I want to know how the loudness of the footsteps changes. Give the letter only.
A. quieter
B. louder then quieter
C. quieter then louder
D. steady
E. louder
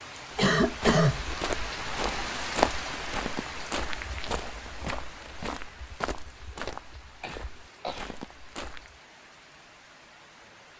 B.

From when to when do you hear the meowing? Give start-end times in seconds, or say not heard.
not heard.